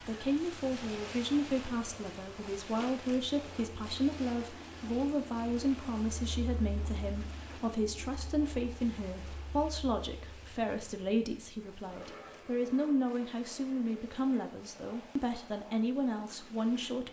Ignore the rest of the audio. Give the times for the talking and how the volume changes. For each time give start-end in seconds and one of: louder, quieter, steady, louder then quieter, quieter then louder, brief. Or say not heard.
0.0-17.0 steady.